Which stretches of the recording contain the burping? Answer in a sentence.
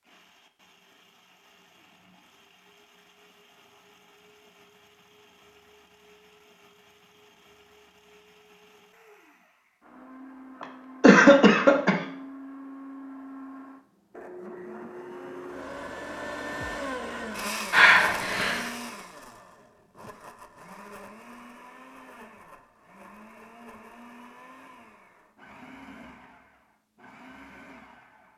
The burping can't be heard in this clip.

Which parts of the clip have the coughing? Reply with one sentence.
The coughing can be heard from 10.6 to 12.0 s and from 17.7 to 18.7 s.